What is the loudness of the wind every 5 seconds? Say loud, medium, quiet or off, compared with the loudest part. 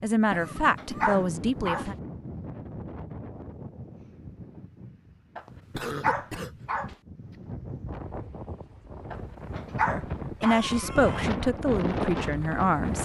medium, medium, loud.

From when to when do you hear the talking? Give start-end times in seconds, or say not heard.
0.0-1.9, 9.8-12.9.